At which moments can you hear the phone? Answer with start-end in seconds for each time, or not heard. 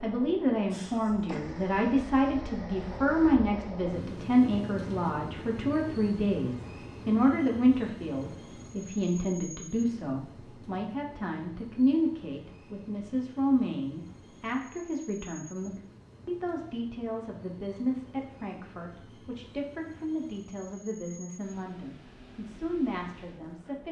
not heard.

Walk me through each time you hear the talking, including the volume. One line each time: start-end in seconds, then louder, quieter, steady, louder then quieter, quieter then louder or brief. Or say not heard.
0.0-23.8 quieter.